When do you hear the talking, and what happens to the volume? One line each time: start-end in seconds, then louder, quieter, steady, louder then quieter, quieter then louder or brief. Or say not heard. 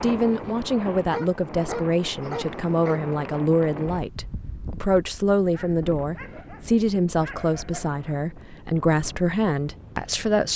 0.0-10.5 steady.